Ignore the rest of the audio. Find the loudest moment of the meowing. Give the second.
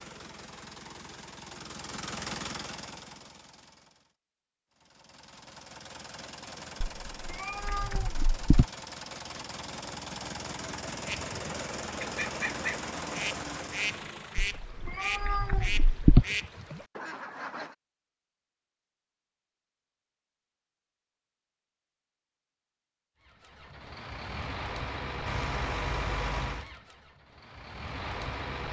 16 s.